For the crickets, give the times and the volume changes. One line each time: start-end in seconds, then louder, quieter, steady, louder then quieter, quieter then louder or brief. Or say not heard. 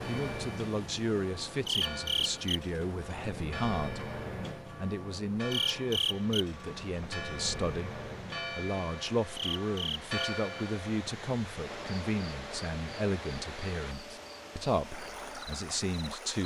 0.0-16.4 quieter.